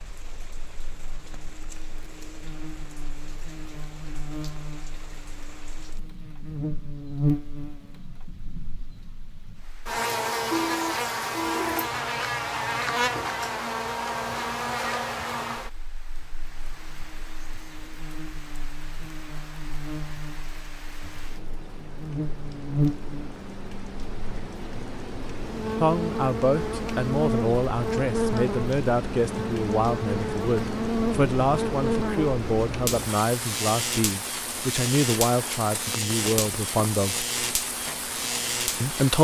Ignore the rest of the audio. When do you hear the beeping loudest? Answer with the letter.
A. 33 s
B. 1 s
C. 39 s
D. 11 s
D.